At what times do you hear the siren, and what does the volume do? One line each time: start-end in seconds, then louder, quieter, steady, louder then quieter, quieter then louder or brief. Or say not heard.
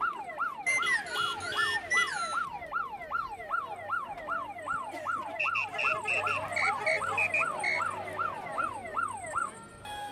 0.0-10.0 steady.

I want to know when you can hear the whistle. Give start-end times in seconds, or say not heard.
0.7-2.5, 5.3-7.8.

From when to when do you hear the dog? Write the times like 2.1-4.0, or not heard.
3.4-8.8.